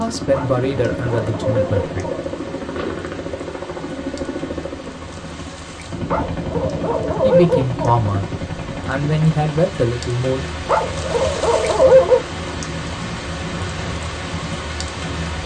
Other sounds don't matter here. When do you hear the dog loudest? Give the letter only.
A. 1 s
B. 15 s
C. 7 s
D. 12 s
D.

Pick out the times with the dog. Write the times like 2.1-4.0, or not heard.
0.3-2.3, 6.1-7.8, 10.7-12.2.